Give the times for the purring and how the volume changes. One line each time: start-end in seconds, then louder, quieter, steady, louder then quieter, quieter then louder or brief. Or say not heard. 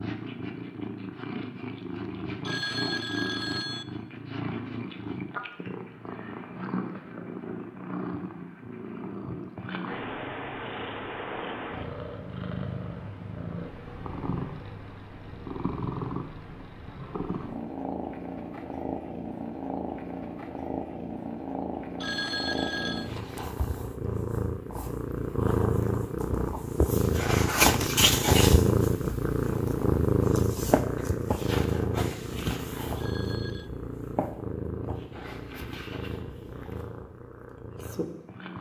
0.0-38.5 louder then quieter.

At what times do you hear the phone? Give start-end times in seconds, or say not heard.
2.4-3.9, 22.0-23.1, 33.0-33.7.